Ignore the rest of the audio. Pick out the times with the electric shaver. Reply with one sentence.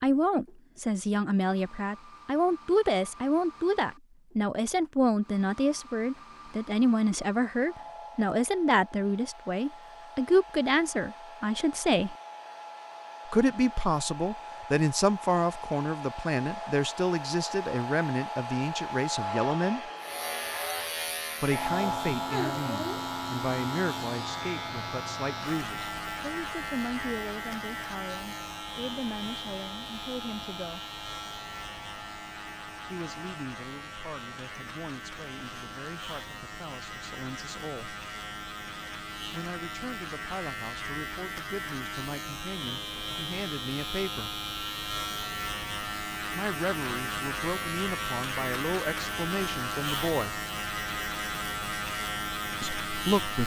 The electric shaver can be heard from 19.9 to 53.4 s.